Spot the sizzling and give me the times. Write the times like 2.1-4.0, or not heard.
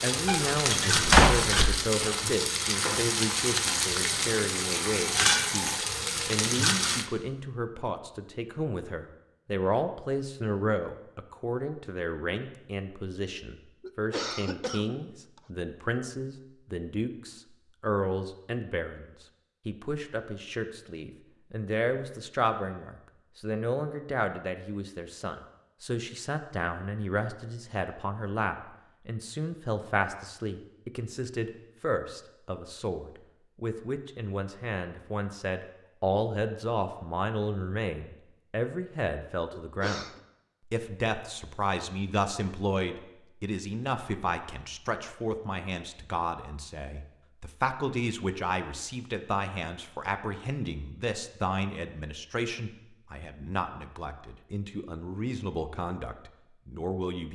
0.0-7.1.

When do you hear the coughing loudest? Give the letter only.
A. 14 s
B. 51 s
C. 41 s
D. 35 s
A.